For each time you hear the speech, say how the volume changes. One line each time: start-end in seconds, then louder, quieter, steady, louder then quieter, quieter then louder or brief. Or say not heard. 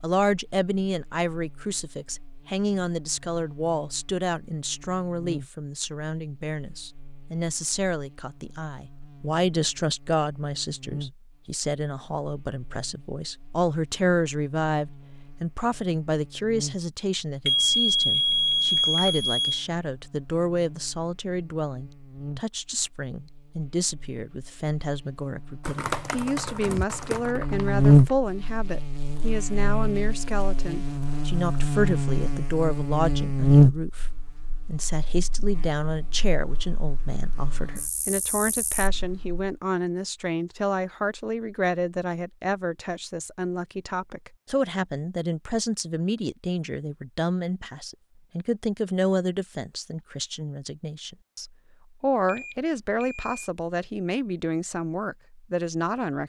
0.0-56.2 steady.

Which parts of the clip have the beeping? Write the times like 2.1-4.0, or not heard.
17.4-19.6, 52.2-53.5.